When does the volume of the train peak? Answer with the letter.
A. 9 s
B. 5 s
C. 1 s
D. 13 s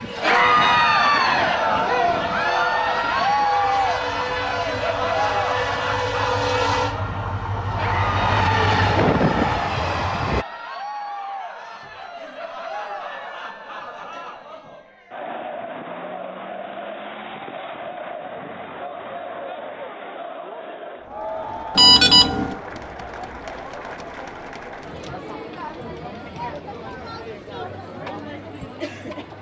A.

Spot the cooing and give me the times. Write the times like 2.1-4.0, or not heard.
not heard.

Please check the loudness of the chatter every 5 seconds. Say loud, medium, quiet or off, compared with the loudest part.
loud, medium, quiet, quiet, quiet, quiet.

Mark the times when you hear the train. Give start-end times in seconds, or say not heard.
0.0-10.4.